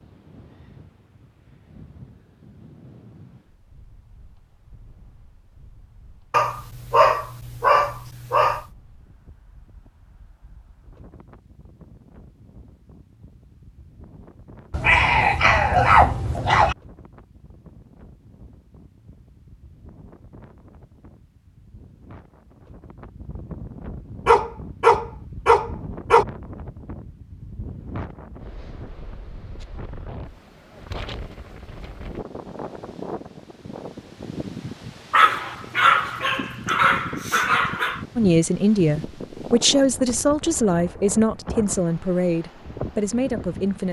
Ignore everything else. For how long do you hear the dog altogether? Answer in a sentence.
You can hear the dog for 9 seconds altogether.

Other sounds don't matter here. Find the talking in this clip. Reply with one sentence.
You can hear the talking from 38.1 to 43.8 s.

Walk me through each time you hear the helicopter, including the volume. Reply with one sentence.
You can't hear the helicopter here.